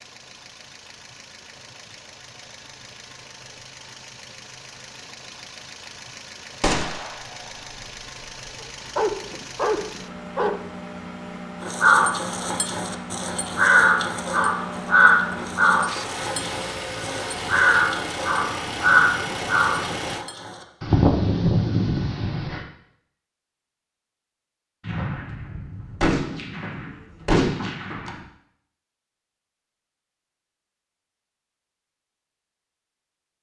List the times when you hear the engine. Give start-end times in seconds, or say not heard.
0.0-20.2.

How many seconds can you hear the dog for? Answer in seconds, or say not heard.
2 s.